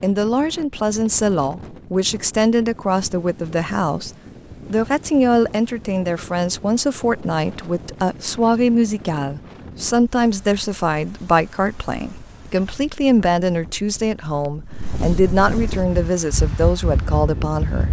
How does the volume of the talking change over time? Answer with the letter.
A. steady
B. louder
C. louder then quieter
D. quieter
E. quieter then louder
A.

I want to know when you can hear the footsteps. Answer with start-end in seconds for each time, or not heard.
not heard.